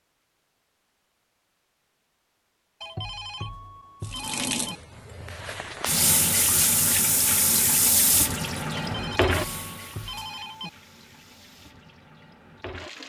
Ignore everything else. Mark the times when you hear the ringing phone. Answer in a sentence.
The ringing phone can be heard from 2.8 to 4.8 s and from 8.7 to 10.7 s.